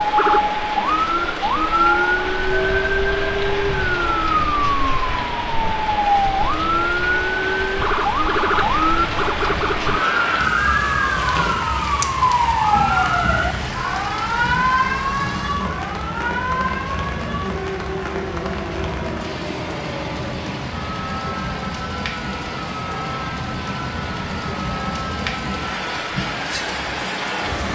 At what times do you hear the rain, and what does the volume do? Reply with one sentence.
The rain can be heard from 0.0 to 27.7 s, at a steady volume.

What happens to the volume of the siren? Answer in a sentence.
The volume of the siren goes down.